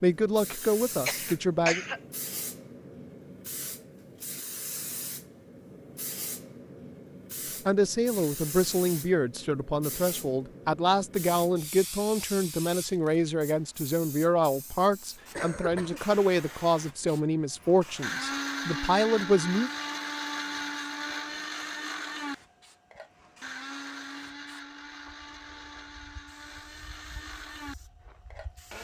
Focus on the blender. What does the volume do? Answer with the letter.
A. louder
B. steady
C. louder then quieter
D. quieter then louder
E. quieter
E.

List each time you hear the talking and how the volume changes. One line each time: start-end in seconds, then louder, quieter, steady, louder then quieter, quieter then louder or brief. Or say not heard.
0.0-1.8 brief
7.7-19.7 steady.